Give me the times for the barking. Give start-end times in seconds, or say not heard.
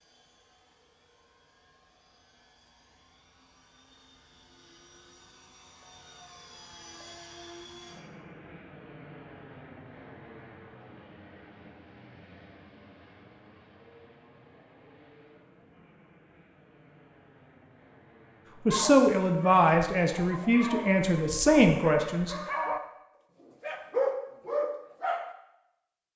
18.7-22.8, 23.4-25.4.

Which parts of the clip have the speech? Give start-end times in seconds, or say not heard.
18.6-22.4.